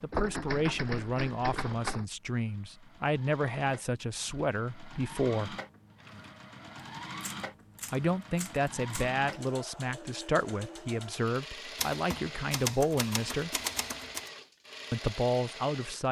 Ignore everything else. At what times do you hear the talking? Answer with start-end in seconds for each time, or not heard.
0.0-5.5, 7.9-13.5, 14.9-16.0.